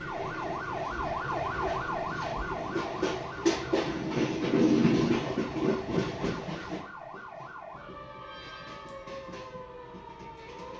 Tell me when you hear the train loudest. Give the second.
5 s.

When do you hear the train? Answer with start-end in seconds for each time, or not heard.
0.0-10.7.